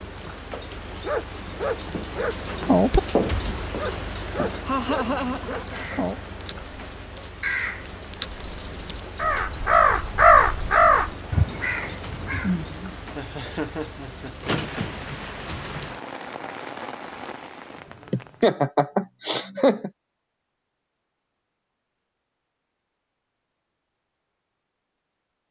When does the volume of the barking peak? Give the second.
3 s.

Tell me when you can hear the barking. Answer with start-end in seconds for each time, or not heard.
0.9-6.2.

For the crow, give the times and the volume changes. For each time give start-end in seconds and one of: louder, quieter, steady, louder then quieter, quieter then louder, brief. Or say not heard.
5.7-13.1 louder then quieter.